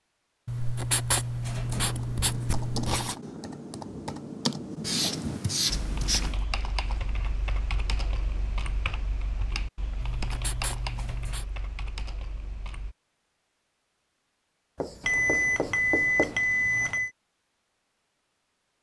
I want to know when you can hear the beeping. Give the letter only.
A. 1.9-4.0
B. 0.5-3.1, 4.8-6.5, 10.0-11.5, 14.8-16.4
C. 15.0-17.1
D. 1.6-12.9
C.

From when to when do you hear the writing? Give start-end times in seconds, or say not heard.
0.5-3.1, 4.8-6.5, 10.0-11.5, 14.8-16.4.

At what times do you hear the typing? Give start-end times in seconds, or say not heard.
1.6-12.9.